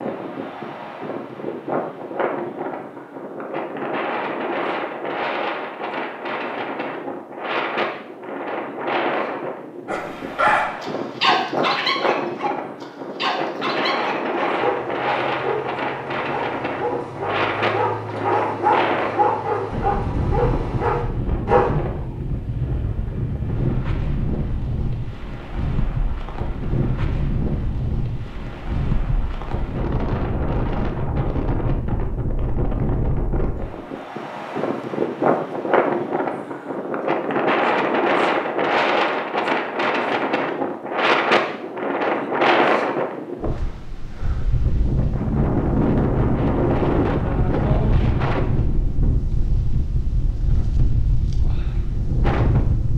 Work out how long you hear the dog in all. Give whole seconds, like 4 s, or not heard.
12 s.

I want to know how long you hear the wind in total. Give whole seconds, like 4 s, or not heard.
53 s.